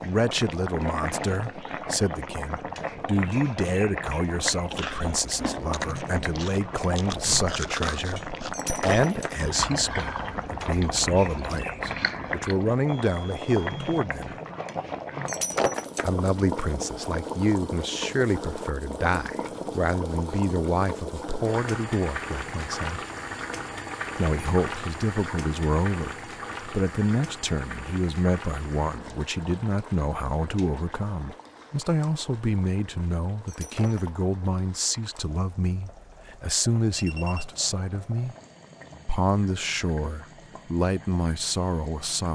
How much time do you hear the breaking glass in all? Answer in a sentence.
You can hear the breaking glass for 2 seconds altogether.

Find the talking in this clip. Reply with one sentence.
The talking can be heard from 0.0 to 14.4 s, from 16.1 to 23.0 s, from 24.1 to 38.4 s and from 39.0 to 42.3 s.